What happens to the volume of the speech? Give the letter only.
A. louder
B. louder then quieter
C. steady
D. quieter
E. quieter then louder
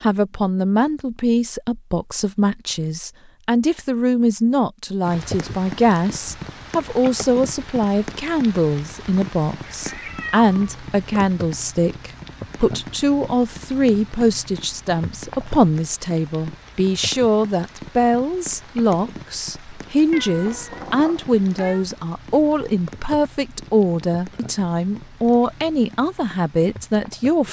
C.